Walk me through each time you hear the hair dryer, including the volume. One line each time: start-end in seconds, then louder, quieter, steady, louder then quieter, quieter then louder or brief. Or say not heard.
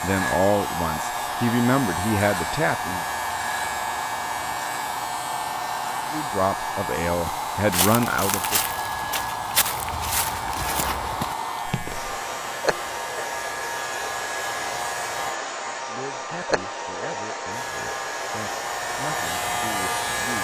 0.0-20.4 steady.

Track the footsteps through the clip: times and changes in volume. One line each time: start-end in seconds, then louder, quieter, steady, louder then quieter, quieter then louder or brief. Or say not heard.
7.0-12.2 steady.